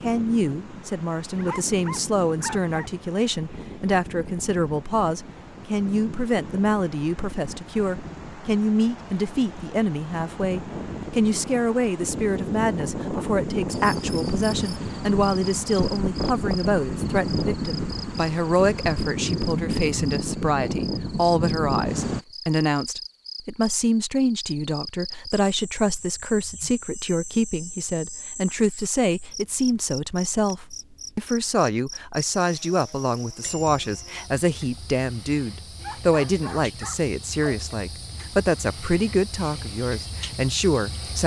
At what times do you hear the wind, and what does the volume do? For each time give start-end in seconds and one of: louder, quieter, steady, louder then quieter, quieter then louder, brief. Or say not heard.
0.0-22.2 louder.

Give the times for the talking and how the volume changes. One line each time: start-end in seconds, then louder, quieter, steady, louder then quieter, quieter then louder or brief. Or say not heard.
0.0-41.2 steady.